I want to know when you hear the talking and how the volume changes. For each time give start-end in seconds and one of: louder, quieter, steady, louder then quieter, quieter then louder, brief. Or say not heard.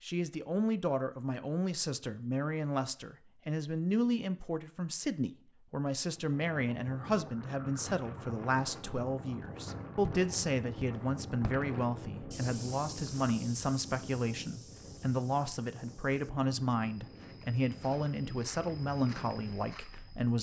0.0-20.3 steady.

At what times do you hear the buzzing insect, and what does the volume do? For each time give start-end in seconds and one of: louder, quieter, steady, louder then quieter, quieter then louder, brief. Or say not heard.
not heard.